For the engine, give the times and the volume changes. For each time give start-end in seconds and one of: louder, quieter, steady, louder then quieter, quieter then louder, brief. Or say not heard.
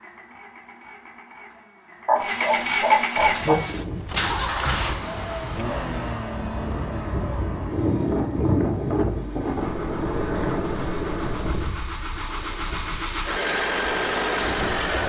0.0-15.0 quieter then louder.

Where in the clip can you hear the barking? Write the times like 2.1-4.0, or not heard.
2.0-3.5.